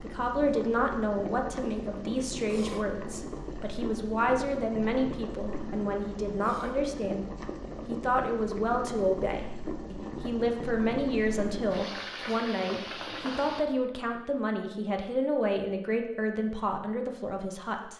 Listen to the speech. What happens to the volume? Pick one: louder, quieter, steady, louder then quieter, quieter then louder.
steady.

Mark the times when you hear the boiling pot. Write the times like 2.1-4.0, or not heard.
0.0-13.7.